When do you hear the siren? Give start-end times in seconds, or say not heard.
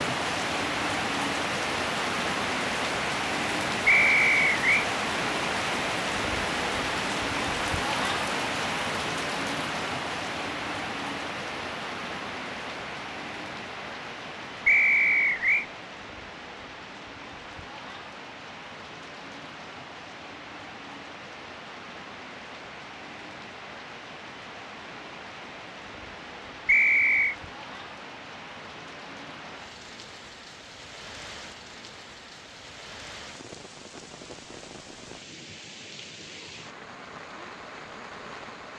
not heard.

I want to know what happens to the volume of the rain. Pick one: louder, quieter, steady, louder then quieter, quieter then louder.
quieter.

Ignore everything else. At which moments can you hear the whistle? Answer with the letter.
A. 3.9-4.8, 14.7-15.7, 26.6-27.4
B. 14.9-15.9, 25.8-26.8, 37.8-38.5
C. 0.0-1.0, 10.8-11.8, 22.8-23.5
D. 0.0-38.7
A.